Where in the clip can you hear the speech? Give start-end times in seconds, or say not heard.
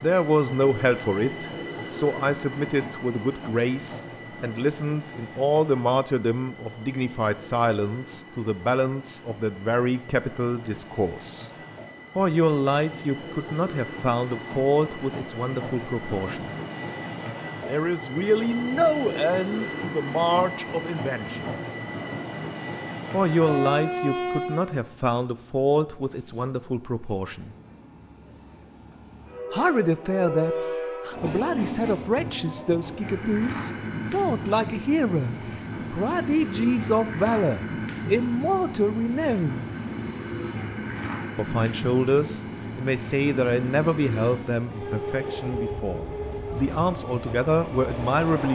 0.0-11.5, 12.2-16.6, 17.6-21.5, 23.1-27.6, 29.5-39.6, 41.4-48.5.